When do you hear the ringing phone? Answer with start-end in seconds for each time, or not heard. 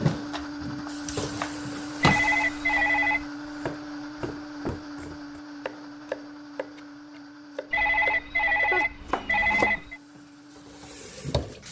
2.0-3.2, 7.7-10.0.